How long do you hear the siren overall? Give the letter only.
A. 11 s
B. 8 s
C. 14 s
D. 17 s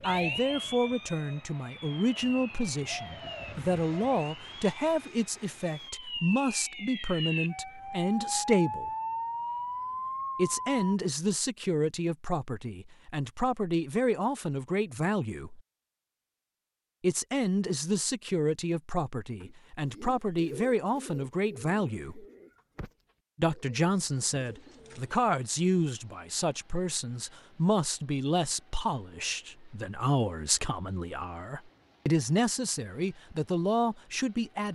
A.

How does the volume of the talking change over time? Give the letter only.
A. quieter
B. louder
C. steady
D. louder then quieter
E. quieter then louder
C.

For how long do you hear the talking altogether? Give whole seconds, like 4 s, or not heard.
31 s.